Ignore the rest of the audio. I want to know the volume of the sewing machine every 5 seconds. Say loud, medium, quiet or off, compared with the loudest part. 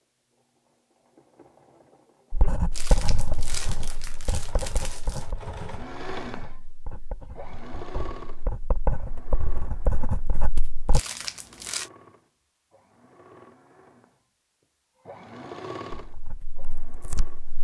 medium, loud, quiet, loud.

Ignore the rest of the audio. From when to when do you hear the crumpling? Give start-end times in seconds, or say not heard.
2.7-5.3, 10.9-11.9.